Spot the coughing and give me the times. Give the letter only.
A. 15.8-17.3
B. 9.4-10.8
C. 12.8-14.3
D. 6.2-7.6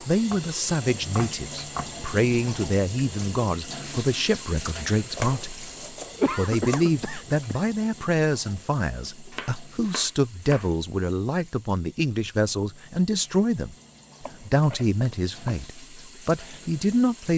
D.